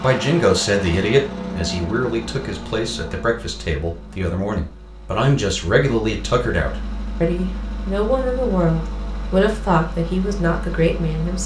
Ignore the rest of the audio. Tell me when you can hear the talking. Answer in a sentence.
You can hear the talking from 0.0 to 11.4 s.